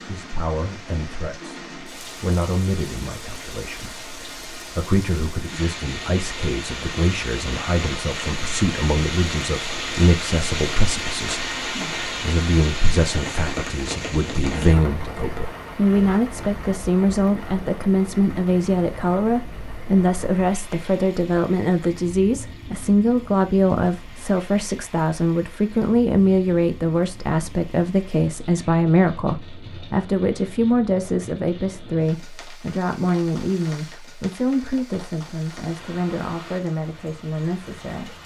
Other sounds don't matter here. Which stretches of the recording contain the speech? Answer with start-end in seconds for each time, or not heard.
0.1-38.1.